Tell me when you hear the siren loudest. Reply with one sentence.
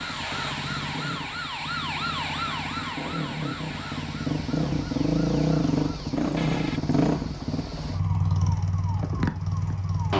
The volume of the siren peaks at 2 seconds.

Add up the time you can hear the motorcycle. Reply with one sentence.
The motorcycle can be heard for 10 seconds in total.